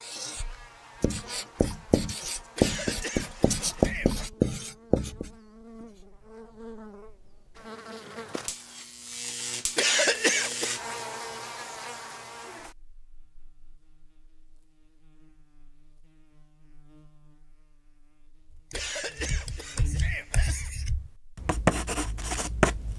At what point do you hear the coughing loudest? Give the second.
10 s.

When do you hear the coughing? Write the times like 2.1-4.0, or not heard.
2.5-4.2, 9.8-10.8, 18.7-20.7.